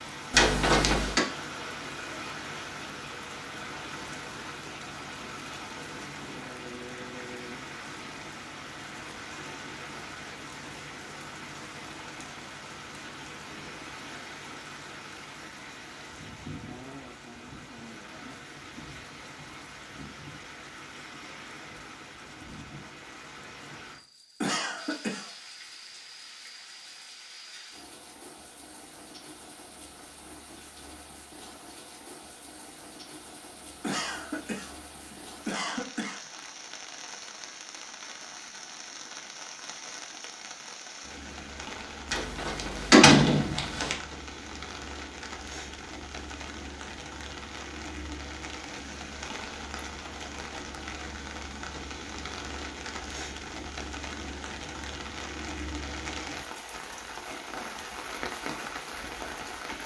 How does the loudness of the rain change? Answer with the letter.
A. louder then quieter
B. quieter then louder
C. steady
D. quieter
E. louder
B.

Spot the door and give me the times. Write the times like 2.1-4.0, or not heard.
0.3-1.2, 42.1-44.0.